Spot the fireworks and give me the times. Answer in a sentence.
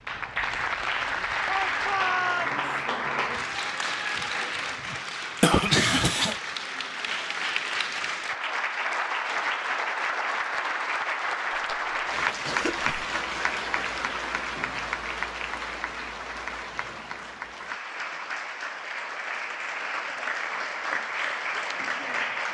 The fireworks can't be heard in this clip.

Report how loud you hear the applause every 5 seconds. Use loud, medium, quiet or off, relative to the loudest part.
loud, loud, loud, medium, loud.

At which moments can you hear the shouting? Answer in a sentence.
You can hear the shouting from 1.4 to 2.6 s.